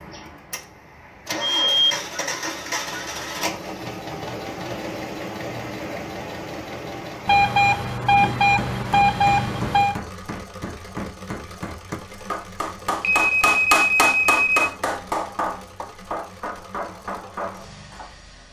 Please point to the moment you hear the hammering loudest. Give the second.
14 s.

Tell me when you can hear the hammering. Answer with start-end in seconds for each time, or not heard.
8.1-18.1.